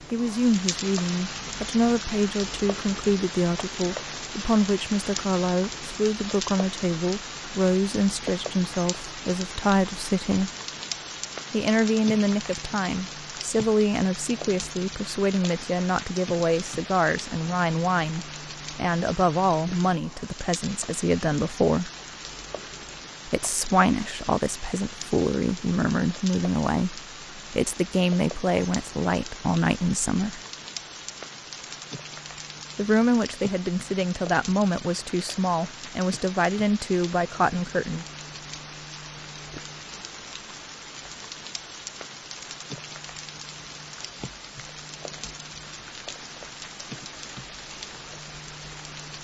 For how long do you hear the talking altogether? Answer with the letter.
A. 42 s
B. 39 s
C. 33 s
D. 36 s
C.